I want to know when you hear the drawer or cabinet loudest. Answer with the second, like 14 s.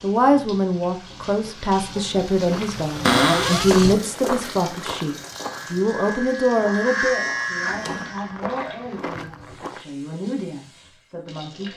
3 s.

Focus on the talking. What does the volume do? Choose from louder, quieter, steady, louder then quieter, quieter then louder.
quieter.